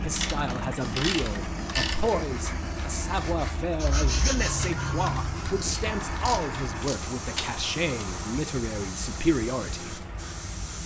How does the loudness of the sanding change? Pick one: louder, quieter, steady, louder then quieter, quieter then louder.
louder then quieter.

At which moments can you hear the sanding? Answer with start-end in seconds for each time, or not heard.
2.1-8.3.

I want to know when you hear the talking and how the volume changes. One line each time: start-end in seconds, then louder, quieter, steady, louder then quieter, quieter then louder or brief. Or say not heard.
0.0-10.1 steady.